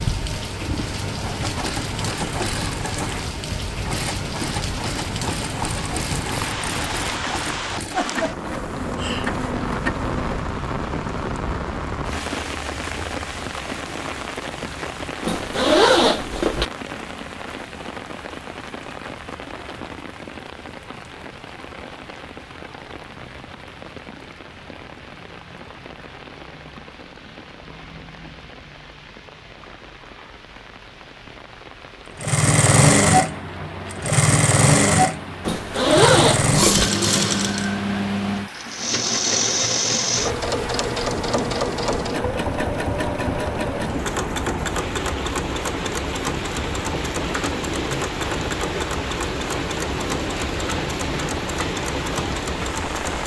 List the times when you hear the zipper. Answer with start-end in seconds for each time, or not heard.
15.2-16.6, 35.5-36.9.